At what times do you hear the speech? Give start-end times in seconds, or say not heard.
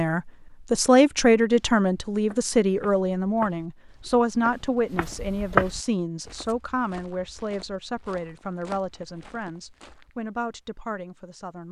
0.0-11.6.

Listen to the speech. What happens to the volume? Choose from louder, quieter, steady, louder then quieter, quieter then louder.
quieter.